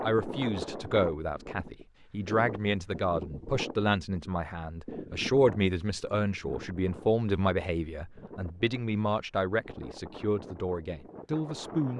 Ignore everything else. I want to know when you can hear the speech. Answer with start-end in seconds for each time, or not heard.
0.0-11.9.